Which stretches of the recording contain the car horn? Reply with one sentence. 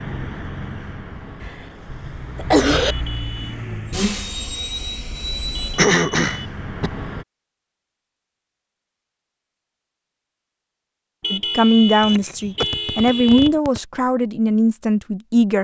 The car horn can be heard from 2.9 to 3.6 s, from 5.5 to 6.5 s and from 11.2 to 13.6 s.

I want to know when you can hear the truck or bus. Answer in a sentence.
You can hear the truck or bus from 0.0 to 7.2 s.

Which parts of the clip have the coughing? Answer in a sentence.
You can hear the coughing from 1.4 to 3.0 s, from 5.8 to 6.9 s and from 12.0 to 13.8 s.